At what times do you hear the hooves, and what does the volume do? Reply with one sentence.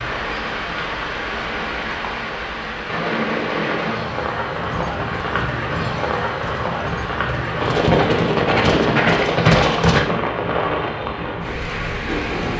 The hooves can be heard from 4.5 to 10.0 s, getting louder.